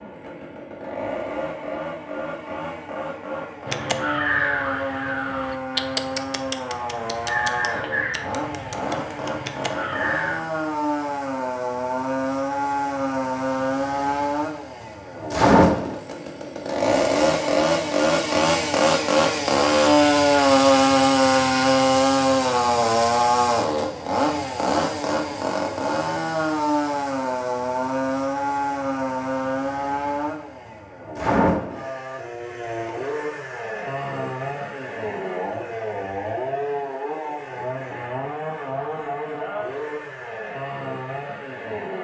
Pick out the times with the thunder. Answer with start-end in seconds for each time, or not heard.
not heard.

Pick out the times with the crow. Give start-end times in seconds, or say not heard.
3.6-10.4.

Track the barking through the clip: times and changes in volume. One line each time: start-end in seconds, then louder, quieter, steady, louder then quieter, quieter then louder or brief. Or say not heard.
not heard.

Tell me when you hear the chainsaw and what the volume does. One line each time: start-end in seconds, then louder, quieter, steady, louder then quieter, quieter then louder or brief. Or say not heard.
0.0-41.9 louder then quieter.